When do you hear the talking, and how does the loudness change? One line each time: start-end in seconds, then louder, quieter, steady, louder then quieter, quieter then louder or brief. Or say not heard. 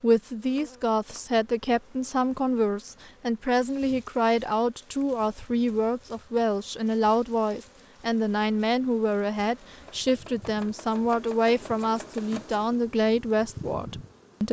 0.0-14.4 steady.